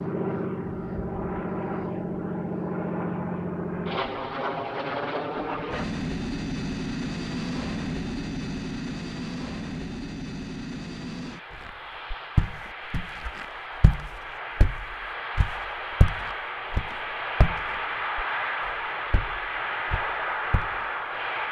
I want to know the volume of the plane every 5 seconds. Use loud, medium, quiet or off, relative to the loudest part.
loud, loud, medium, loud, loud.